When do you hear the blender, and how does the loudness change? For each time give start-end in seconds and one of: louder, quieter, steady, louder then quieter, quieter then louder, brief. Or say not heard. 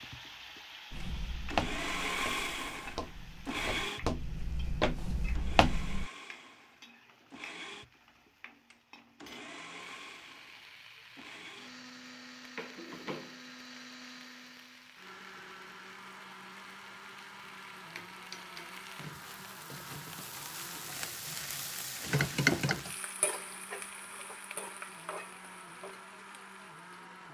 0.0-27.3 quieter.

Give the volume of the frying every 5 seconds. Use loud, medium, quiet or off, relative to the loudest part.
quiet, quiet, quiet, quiet, loud, quiet.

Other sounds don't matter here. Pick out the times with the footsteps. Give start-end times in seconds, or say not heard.
0.9-6.1.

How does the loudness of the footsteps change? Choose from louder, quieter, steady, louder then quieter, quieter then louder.
quieter then louder.